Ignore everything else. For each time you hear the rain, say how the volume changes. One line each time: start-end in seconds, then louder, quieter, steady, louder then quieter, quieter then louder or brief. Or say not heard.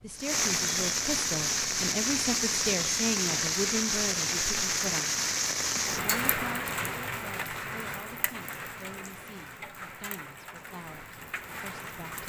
0.1-12.2 quieter.